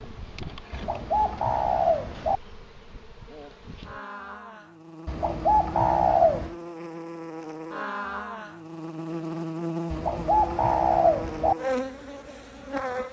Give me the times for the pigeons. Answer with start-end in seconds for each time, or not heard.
0.7-2.4, 5.0-6.5, 9.9-11.6.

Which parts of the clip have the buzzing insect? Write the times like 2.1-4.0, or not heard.
0.0-13.0.